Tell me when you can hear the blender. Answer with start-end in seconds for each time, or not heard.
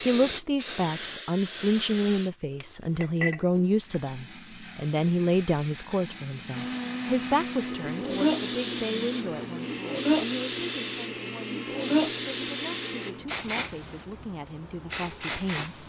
6.5-13.2.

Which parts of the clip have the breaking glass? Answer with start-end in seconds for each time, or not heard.
not heard.